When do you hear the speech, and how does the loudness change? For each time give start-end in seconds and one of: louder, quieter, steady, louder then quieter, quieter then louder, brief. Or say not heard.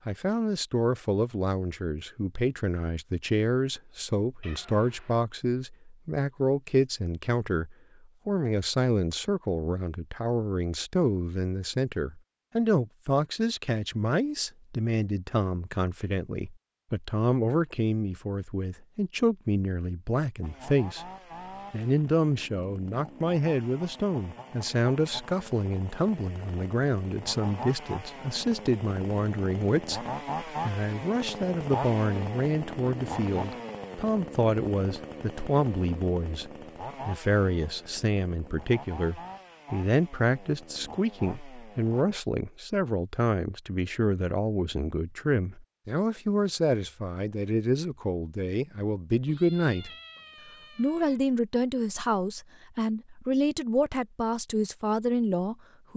0.1-21.1 steady
21.7-49.9 steady
50.8-55.9 steady.